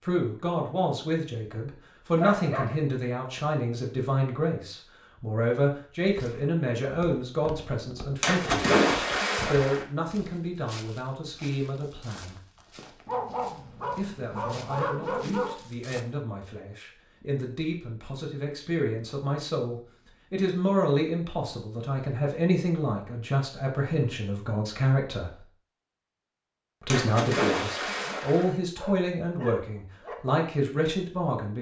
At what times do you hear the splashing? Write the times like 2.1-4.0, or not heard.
8.2-9.8, 26.9-28.5.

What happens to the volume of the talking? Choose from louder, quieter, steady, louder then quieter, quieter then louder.
quieter then louder.